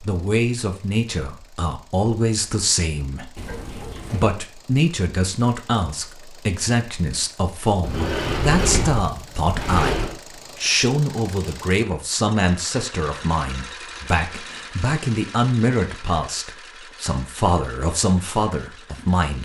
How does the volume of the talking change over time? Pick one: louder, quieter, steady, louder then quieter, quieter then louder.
steady.